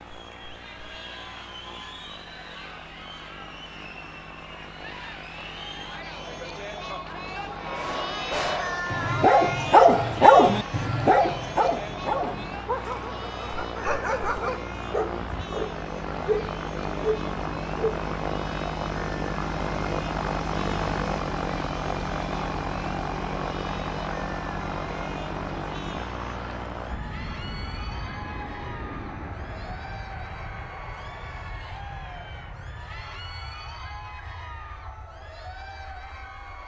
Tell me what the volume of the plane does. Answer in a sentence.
The volume of the plane goes up, then down.